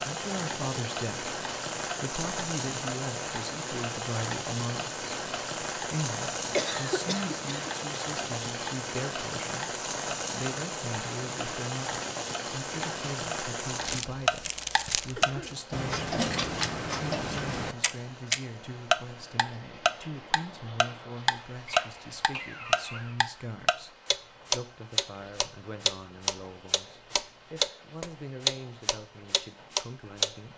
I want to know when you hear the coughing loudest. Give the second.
7 s.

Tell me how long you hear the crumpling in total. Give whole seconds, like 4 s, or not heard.
2 s.